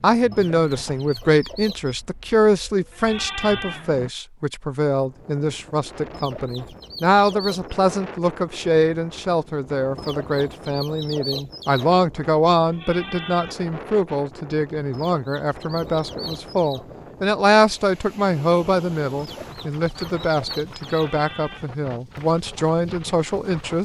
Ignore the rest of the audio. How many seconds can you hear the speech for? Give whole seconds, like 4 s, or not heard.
24 s.